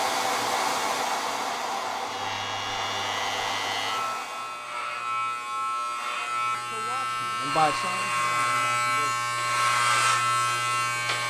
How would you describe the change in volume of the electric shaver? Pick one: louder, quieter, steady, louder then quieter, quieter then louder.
louder.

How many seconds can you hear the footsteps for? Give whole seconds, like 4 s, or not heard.
not heard.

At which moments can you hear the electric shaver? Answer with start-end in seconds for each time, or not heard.
2.0-11.2.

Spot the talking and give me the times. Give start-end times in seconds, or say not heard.
6.7-9.2.